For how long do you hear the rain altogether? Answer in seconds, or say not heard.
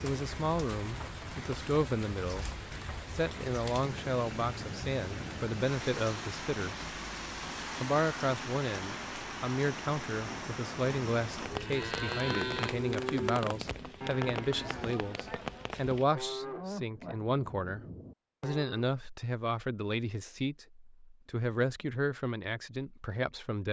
16 s.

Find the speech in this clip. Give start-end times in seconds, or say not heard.
0.0-2.5, 3.1-6.8, 7.8-23.6.